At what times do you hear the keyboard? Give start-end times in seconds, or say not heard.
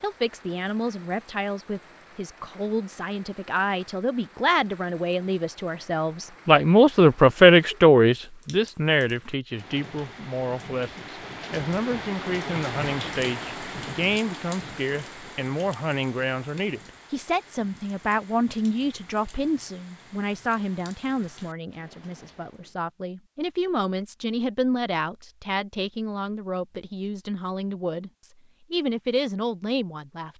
not heard.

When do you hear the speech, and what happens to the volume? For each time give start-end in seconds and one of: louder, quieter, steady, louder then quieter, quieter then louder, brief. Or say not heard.
0.0-30.3 louder then quieter.